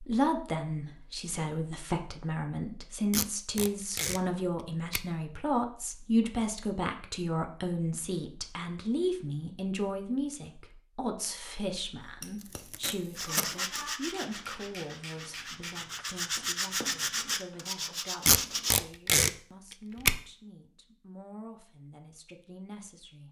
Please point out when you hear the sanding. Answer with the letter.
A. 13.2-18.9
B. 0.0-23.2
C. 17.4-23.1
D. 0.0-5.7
A.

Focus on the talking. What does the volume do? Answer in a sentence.
The volume of the talking goes down.